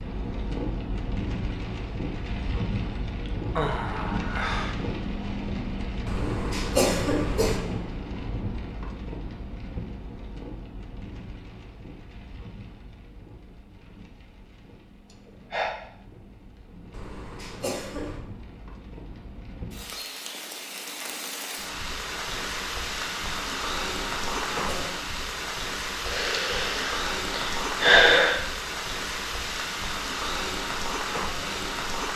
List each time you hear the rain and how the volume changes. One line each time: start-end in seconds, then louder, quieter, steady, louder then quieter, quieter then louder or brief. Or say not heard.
0.0-32.1 quieter then louder.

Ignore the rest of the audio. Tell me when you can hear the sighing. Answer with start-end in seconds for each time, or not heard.
3.2-4.8, 15.1-15.8, 26.1-28.4.